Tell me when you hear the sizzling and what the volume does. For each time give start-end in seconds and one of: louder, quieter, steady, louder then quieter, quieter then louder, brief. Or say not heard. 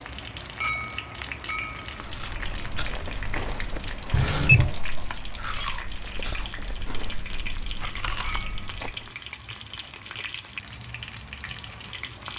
0.0-12.3 steady.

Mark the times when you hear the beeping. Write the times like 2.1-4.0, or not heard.
4.1-4.8.